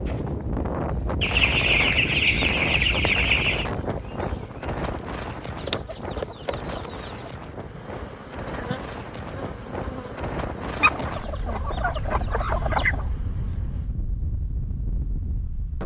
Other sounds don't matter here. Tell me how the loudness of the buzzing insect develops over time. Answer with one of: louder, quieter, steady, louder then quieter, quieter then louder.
quieter.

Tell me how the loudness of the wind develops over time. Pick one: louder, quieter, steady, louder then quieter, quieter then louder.
quieter.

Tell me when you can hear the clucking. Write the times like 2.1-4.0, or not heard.
1.2-3.7, 5.5-7.3, 10.8-13.1.